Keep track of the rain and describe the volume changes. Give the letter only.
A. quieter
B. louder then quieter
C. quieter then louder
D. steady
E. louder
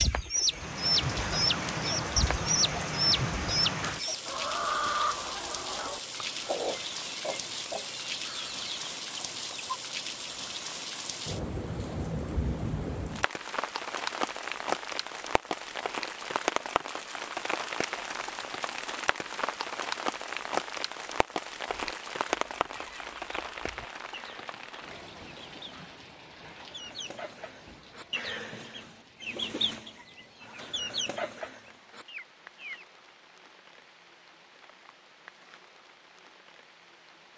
A.